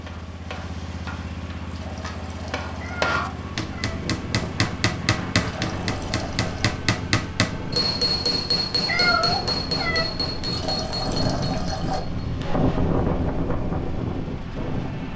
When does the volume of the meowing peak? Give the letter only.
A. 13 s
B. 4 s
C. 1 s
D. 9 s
D.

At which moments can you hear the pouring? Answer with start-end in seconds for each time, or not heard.
1.6-3.1, 5.4-6.8, 10.5-12.0.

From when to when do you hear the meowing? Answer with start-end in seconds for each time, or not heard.
2.8-4.0, 8.8-10.1.